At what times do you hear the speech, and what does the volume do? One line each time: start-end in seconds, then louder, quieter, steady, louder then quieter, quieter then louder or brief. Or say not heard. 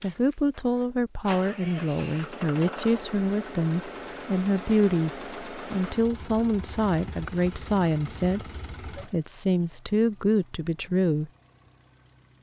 0.0-11.3 steady.